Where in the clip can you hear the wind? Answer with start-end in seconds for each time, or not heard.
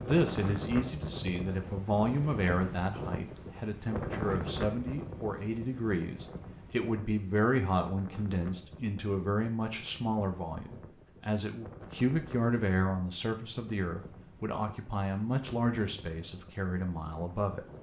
0.0-17.7.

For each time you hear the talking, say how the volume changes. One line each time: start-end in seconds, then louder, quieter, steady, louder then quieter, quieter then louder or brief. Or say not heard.
0.0-17.6 steady.